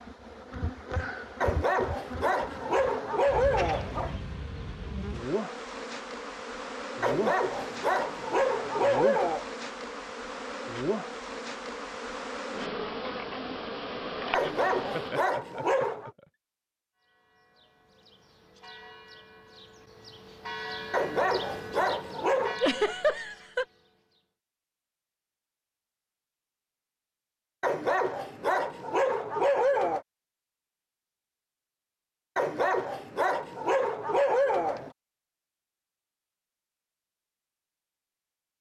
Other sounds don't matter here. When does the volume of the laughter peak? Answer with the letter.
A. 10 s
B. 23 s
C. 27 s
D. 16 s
B.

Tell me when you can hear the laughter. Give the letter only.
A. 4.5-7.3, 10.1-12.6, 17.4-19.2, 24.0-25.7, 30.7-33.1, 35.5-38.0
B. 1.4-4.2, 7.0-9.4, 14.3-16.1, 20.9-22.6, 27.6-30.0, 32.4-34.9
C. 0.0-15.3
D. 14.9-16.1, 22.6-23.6
D.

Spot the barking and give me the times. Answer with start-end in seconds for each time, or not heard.
1.4-4.2, 7.0-9.4, 14.3-16.1, 20.9-22.6, 27.6-30.0, 32.4-34.9.